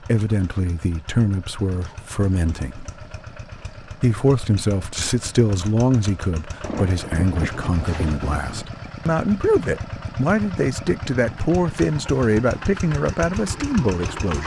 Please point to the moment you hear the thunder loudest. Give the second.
7 s.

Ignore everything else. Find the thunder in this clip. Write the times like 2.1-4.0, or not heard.
6.6-8.7.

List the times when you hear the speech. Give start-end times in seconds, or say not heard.
0.0-3.0, 3.8-14.4.